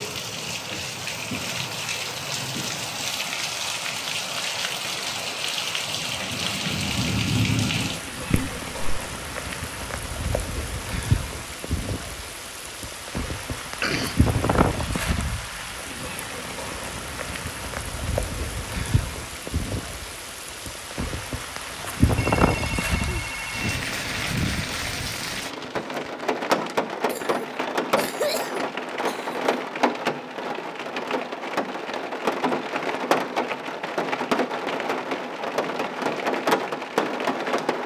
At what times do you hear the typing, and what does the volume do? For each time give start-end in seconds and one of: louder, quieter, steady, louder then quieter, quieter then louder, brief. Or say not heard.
not heard.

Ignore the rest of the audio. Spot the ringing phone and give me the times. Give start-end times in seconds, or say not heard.
22.1-23.6.